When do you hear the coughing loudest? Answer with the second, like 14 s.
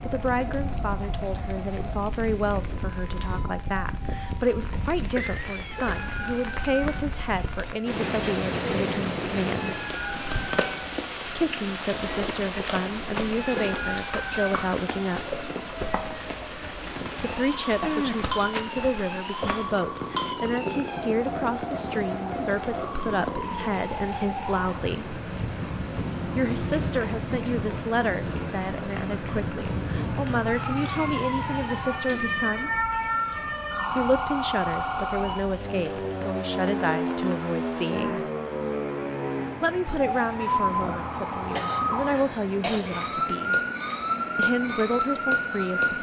18 s.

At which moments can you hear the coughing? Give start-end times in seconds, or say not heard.
5.2-6.1, 17.8-18.9, 41.5-43.1.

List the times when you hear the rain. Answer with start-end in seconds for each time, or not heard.
0.0-45.9.